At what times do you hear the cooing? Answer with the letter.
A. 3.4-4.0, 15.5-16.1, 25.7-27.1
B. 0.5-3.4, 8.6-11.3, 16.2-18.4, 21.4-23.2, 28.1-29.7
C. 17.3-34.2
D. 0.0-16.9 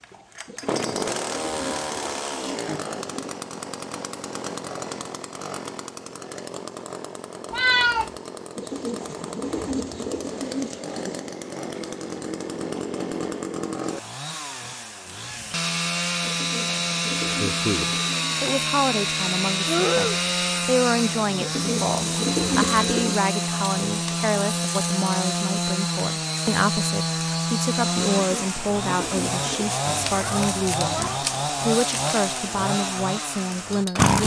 B.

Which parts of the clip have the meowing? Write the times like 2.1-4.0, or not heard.
7.5-8.1, 19.6-20.2, 29.9-31.2.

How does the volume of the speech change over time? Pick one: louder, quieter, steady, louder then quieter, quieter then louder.
steady.